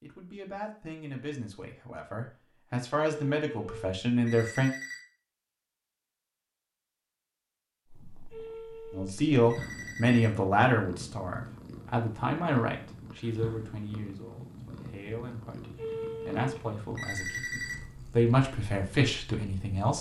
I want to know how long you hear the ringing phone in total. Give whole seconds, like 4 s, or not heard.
6 s.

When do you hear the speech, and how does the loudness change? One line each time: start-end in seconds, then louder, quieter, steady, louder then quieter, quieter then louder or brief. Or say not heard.
0.0-4.7 louder
8.9-19.9 quieter then louder.